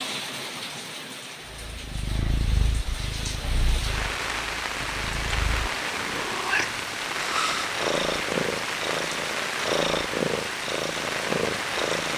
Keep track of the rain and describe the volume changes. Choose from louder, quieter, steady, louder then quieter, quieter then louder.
louder.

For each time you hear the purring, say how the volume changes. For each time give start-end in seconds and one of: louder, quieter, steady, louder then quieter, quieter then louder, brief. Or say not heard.
1.6-12.1 quieter then louder.